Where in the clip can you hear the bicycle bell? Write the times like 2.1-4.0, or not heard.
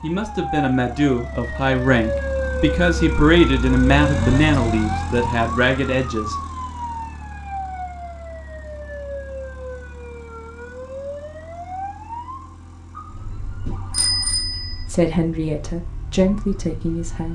13.7-14.8.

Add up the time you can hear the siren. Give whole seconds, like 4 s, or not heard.
17 s.